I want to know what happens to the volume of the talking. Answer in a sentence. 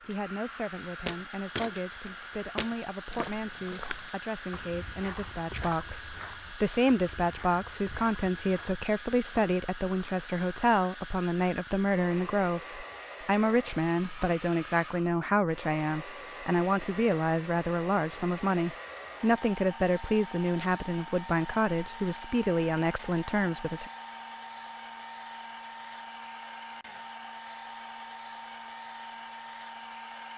The loudness of the talking goes up.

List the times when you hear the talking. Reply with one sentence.
The talking can be heard from 0.1 to 23.9 s.